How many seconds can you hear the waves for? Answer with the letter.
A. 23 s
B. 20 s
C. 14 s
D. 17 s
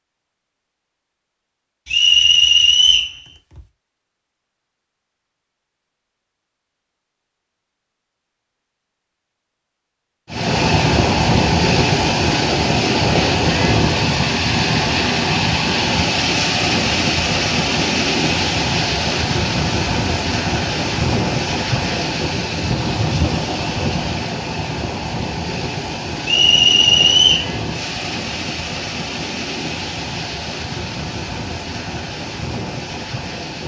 A.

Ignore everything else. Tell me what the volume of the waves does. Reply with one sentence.
The loudness of the waves goes down.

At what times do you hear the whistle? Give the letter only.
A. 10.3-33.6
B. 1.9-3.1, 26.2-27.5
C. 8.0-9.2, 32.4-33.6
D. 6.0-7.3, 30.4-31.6
B.